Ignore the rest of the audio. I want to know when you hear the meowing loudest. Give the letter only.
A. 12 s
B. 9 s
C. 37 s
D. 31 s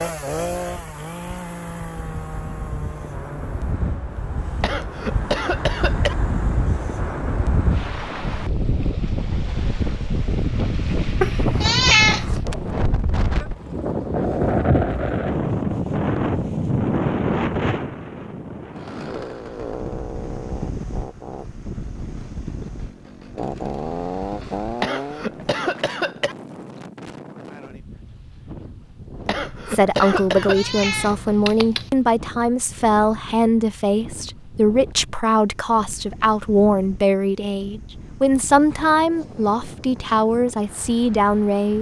A.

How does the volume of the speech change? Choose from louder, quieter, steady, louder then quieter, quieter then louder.
steady.